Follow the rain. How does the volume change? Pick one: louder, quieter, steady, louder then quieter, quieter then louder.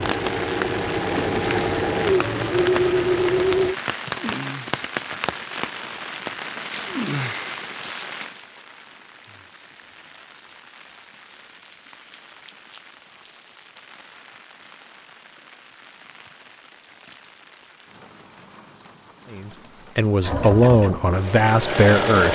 quieter.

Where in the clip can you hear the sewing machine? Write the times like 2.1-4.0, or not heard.
0.0-3.8, 20.2-22.3.